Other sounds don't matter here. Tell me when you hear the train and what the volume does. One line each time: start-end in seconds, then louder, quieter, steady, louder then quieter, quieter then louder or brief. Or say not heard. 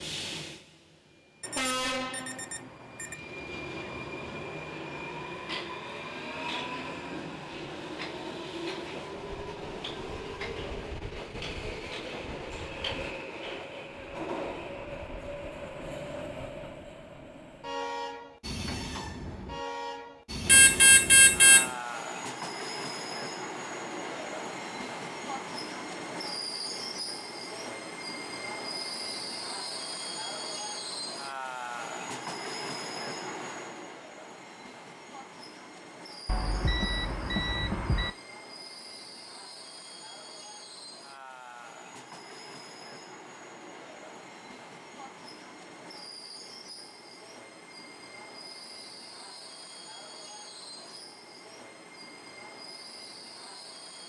0.0-54.0 quieter.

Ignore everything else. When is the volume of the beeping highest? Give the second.
21 s.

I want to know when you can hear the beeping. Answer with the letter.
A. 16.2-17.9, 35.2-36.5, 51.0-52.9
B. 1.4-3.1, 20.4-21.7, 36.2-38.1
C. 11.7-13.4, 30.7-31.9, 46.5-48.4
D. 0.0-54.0
B.